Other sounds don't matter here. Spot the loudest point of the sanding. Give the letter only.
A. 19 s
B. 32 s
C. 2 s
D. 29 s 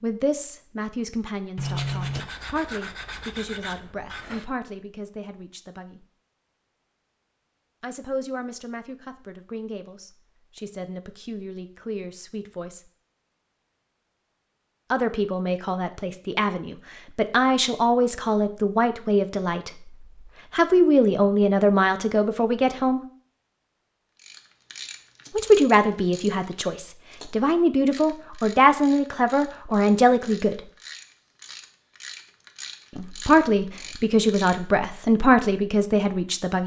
C.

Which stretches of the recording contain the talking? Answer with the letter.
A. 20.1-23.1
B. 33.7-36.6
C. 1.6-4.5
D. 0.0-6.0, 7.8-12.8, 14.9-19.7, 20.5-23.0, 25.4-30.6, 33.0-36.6
D.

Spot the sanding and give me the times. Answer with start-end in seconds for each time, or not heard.
1.6-4.5.